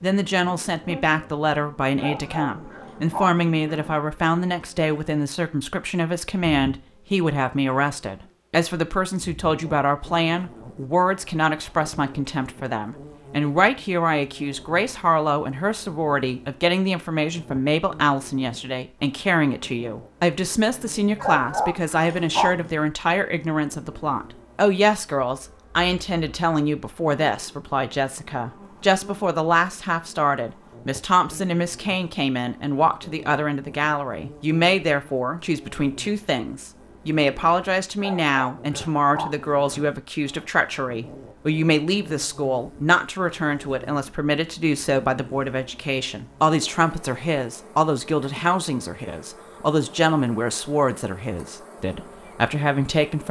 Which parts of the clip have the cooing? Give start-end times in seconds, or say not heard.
not heard.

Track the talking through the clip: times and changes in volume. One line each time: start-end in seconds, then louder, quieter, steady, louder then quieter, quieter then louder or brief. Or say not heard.
0.0-53.2 steady.